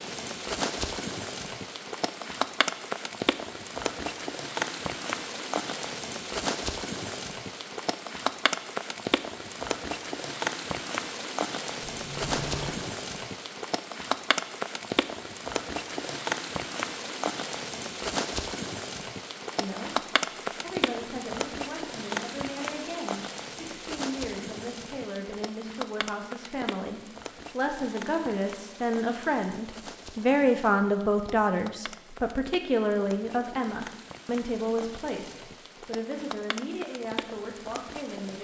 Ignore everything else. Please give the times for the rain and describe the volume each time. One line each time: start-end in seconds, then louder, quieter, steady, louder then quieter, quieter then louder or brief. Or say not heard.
0.0-38.3 quieter.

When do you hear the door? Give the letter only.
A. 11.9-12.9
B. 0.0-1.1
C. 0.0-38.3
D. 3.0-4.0
A.